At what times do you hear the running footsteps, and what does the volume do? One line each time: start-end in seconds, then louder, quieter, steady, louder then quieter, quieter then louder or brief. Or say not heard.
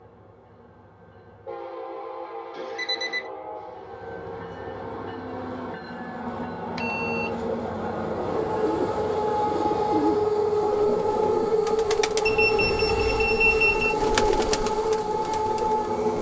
not heard.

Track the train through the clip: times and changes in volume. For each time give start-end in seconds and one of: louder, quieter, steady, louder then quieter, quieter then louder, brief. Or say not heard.
0.0-16.1 louder.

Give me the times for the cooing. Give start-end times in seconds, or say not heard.
8.2-16.1.